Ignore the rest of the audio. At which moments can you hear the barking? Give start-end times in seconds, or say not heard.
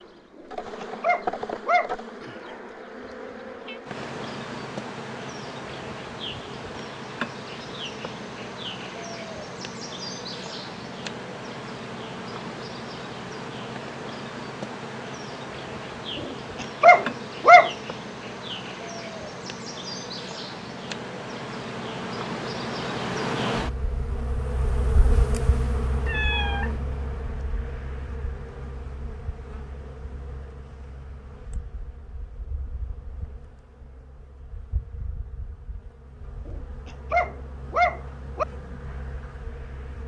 0.4-1.9, 16.6-17.7, 36.5-38.5.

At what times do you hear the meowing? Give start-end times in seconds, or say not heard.
3.0-3.8, 26.1-26.8.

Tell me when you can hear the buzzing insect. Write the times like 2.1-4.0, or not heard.
0.0-40.0.